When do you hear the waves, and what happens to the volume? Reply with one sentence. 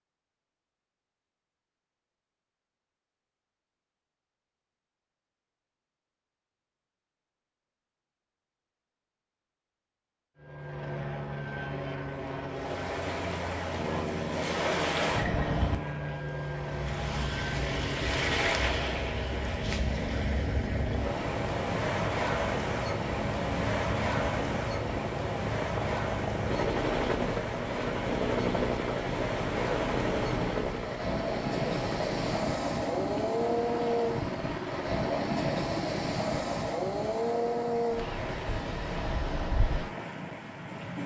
You can hear the waves from 12.4 to 41.0 s, at a steady volume.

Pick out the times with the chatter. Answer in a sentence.
The chatter can't be heard in this clip.